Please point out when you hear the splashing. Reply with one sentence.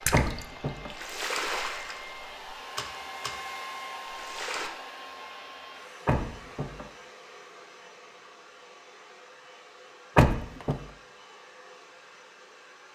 The splashing can be heard from 0.0 to 3.5 s and from 4.0 to 4.7 s.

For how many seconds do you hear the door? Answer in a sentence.
You can hear the door for 2 seconds altogether.